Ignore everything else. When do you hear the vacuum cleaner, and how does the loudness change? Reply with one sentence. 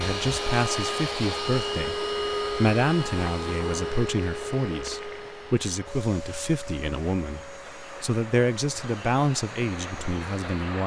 You can hear the vacuum cleaner from 0.0 to 10.8 s, getting quieter.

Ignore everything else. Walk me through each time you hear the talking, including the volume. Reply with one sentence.
The talking can be heard from 0.0 to 10.8 s, at a steady volume.